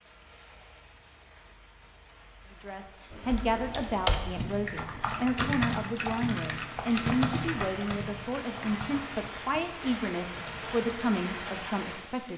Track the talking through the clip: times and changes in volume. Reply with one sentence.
The talking can be heard from 2.6 to 12.3 s, at a steady volume.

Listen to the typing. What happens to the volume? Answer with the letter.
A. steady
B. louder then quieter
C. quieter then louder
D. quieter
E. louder
D.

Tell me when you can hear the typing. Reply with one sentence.
The typing can be heard from 3.1 to 11.4 s.